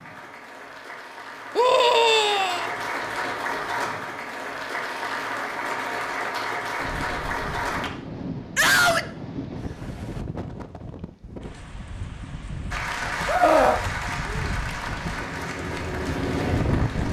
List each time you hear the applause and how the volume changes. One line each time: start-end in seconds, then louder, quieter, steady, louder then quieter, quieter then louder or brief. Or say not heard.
0.0-7.9 louder
12.7-17.0 quieter.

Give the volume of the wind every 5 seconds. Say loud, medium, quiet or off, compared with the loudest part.
off, medium, medium, loud.